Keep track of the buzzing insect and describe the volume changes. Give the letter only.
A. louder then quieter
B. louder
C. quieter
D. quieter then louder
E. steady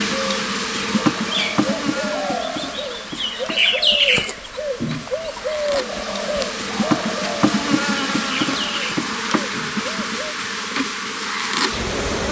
D.